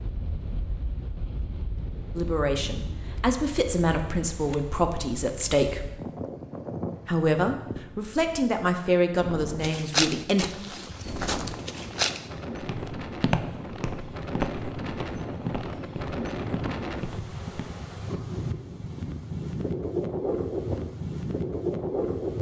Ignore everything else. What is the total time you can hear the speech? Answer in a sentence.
The speech can be heard for 7 seconds in total.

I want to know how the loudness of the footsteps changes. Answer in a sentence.
The loudness of the footsteps goes down.